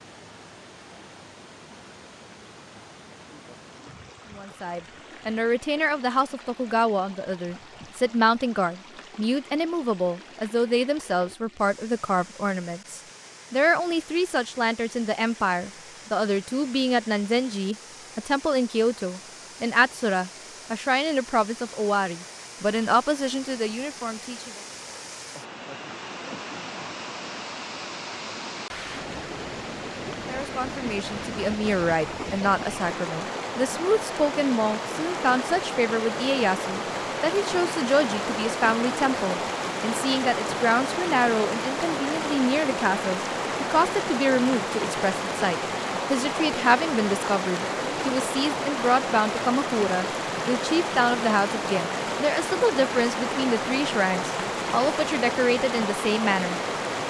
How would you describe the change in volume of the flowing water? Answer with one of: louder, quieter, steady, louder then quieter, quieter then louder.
louder.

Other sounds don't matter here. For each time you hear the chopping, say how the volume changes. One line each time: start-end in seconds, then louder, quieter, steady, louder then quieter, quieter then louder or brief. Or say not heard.
not heard.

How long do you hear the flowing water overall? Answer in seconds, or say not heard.
57 s.